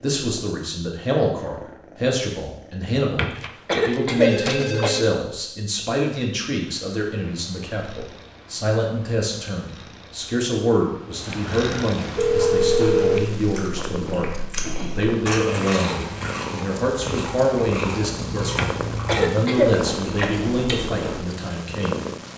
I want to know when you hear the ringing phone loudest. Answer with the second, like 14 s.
13 s.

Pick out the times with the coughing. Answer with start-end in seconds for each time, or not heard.
3.1-5.0, 18.6-20.3.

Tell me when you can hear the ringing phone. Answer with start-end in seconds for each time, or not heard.
3.4-5.0, 11.5-13.3.